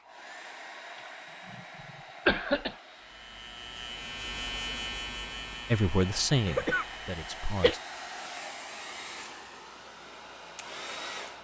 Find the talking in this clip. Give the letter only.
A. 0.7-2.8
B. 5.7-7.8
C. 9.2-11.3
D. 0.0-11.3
B.